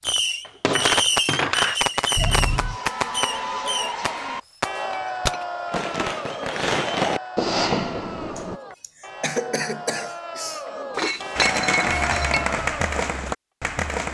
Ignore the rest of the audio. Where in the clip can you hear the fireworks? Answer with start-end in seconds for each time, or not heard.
0.0-8.6, 11.3-14.0.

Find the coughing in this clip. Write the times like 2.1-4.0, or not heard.
2.1-2.8, 8.3-10.6.